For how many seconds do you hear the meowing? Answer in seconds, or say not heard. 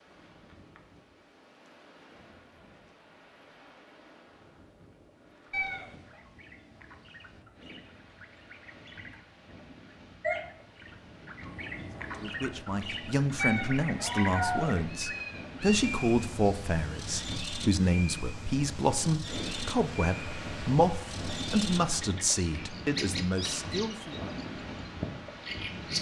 3 s.